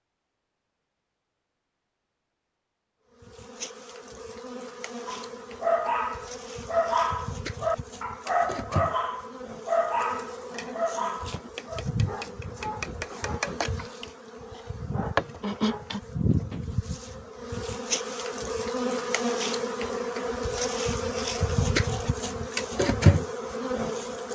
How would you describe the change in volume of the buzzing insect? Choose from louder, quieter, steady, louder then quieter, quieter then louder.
louder.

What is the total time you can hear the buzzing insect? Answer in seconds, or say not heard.
21 s.